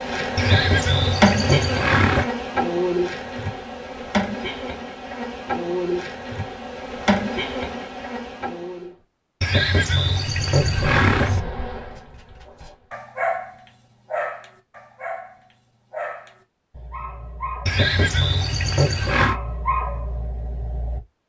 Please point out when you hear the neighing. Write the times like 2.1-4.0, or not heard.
0.3-2.2, 9.4-11.4, 17.6-19.4.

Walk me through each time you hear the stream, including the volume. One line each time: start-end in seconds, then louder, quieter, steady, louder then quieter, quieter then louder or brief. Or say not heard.
not heard.